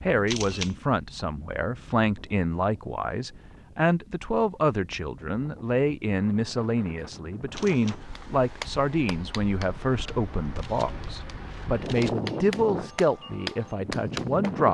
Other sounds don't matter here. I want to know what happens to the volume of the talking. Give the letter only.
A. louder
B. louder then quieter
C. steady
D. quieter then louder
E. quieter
C.